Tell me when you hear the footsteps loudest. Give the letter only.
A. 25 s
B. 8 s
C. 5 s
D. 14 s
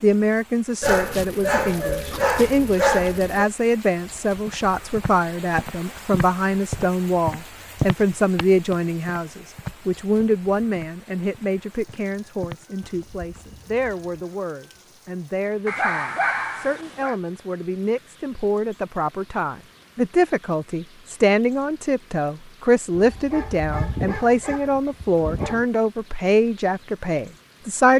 B.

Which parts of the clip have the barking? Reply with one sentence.
You can hear the barking from 0.8 to 3.5 s, from 15.7 to 17.1 s and from 22.9 to 25.6 s.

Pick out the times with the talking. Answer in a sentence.
You can hear the talking from 0.0 to 27.9 s.